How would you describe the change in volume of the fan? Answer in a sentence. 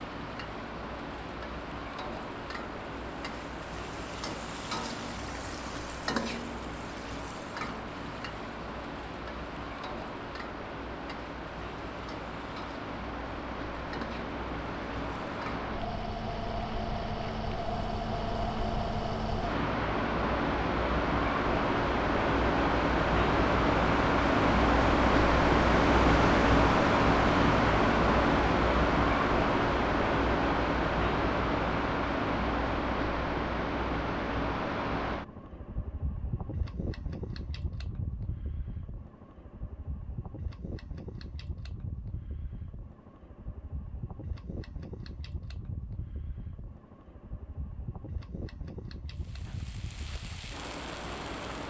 The loudness of the fan goes up, then down.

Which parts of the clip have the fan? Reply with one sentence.
The fan can be heard from 0.0 to 51.6 s.